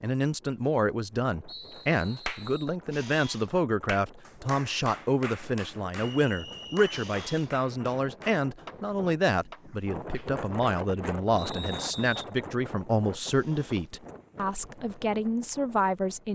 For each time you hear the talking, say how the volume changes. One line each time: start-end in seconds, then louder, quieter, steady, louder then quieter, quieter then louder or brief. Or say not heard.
0.0-16.3 steady.